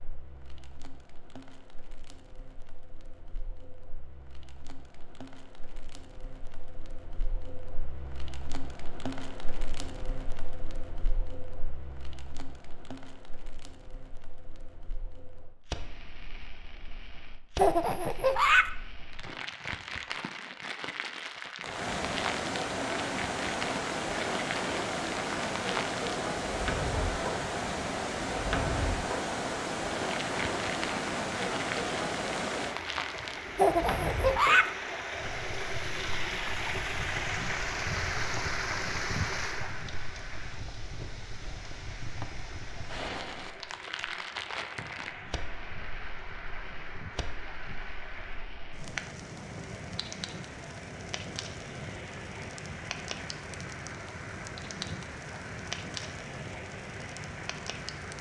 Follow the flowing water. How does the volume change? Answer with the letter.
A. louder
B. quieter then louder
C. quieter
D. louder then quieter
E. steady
C.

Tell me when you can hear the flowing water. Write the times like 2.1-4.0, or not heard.
21.6-58.1.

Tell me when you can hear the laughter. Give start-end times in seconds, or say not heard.
17.6-18.7, 33.5-34.7.